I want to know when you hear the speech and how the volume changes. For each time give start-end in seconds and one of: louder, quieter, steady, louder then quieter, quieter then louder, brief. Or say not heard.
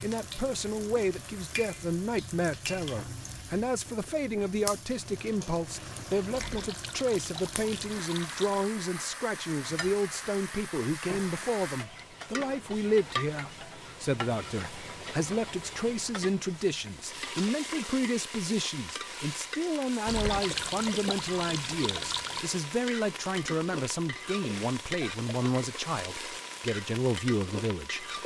0.0-28.1 steady.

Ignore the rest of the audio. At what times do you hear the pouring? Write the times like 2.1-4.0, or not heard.
6.3-8.8, 20.1-22.4.